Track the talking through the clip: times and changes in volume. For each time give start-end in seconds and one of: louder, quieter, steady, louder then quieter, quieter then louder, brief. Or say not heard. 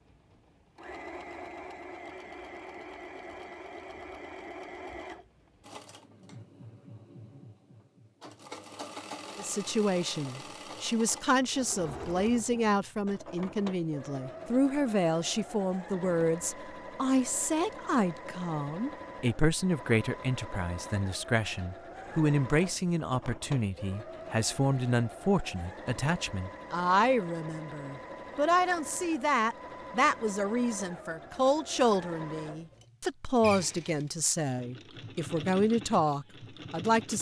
9.3-37.1 steady.